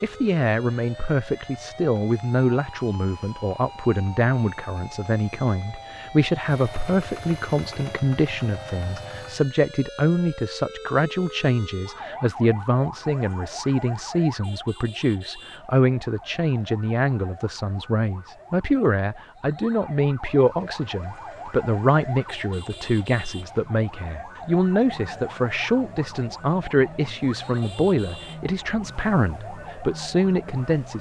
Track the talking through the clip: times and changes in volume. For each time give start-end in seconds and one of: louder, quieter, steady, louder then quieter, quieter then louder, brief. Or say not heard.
0.0-30.9 steady.